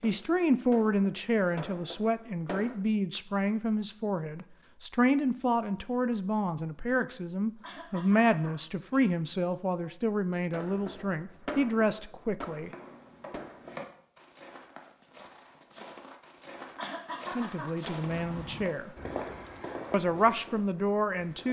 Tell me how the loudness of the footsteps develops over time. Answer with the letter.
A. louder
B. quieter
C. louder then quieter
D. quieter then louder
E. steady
D.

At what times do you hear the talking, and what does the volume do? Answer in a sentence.
The talking can be heard from 0.0 to 12.7 s, at a steady volume; briefly from 17.4 to 18.9 s; and briefly from 19.9 to 21.4 s.